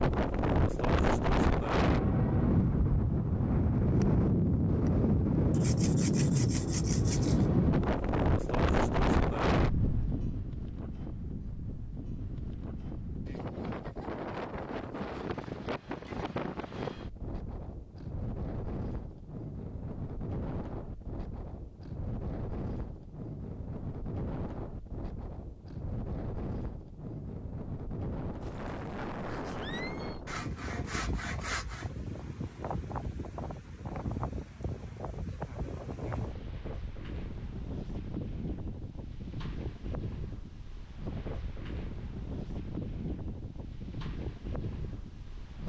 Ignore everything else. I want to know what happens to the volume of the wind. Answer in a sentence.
The loudness of the wind goes down.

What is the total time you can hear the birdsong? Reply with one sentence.
You can't hear the birdsong here.